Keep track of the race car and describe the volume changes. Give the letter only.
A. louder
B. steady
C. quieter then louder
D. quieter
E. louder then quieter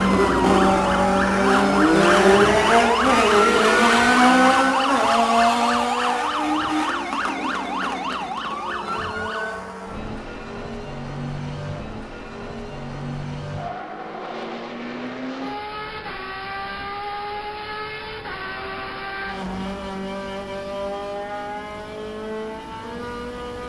D.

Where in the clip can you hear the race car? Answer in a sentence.
The race car can be heard from 0.0 to 23.6 s.